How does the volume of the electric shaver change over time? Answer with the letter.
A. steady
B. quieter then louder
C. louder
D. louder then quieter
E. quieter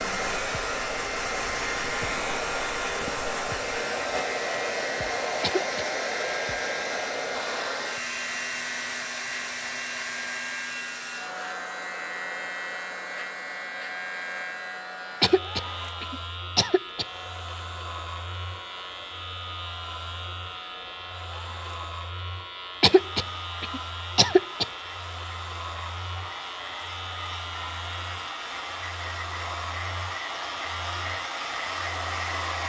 A.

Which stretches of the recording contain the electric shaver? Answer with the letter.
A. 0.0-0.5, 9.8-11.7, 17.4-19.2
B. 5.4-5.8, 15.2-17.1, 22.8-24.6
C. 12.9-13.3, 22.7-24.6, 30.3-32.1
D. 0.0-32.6
D.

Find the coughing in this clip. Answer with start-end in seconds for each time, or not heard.
5.4-5.8, 15.2-17.1, 22.8-24.6.